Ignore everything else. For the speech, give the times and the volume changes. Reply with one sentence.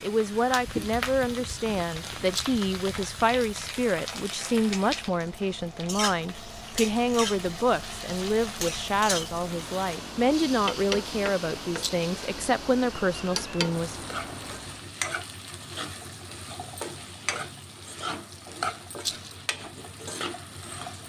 You can hear the speech from 0.0 to 13.9 s, at a steady volume.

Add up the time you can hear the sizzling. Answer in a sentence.
You can hear the sizzling for 21 seconds altogether.